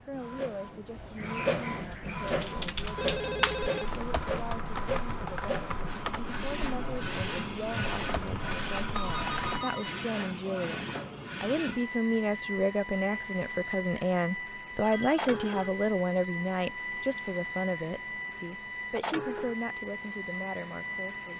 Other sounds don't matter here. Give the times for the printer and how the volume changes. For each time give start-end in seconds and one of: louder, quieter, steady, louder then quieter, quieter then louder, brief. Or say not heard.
0.0-21.3 steady.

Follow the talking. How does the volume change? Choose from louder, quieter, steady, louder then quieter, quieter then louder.
louder then quieter.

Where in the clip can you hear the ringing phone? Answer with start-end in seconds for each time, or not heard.
3.0-4.5, 8.9-10.3, 14.8-15.8.